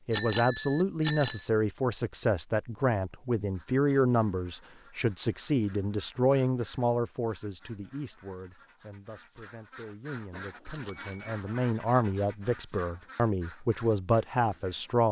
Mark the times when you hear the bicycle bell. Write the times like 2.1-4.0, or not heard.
0.1-1.4, 10.3-11.4.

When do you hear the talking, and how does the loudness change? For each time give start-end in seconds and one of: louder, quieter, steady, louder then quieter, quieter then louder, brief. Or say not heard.
0.1-15.0 quieter then louder.